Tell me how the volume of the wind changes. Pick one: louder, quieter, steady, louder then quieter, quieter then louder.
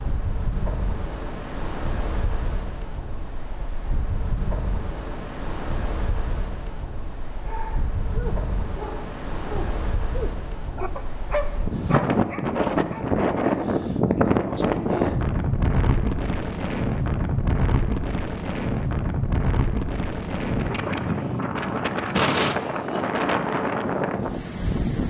louder.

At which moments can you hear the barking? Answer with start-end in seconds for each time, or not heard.
7.4-13.1.